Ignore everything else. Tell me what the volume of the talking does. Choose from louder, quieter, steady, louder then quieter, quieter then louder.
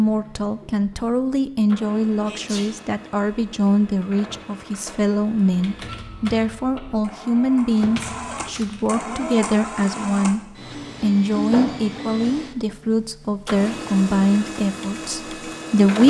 steady.